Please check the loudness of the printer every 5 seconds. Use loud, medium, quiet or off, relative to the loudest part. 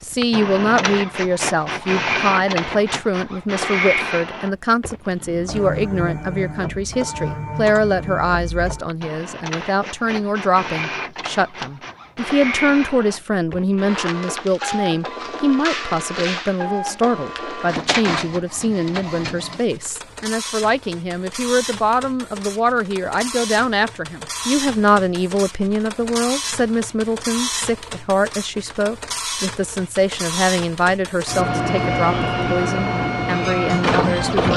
loud, medium, medium, medium, medium, medium, loud.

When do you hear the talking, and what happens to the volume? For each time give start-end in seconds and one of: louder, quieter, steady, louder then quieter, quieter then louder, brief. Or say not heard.
0.0-34.5 steady.